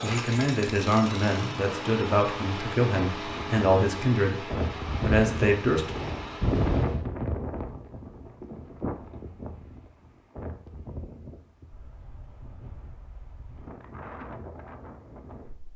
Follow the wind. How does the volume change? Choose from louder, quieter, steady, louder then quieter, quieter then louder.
quieter.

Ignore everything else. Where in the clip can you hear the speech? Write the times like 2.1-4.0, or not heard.
0.0-5.9.